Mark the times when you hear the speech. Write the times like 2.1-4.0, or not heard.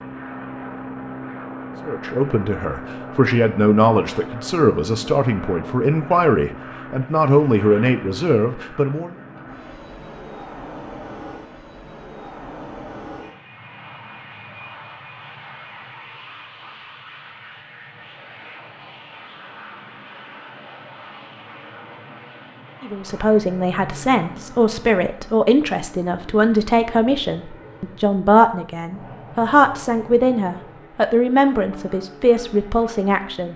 1.9-9.2, 22.8-33.5.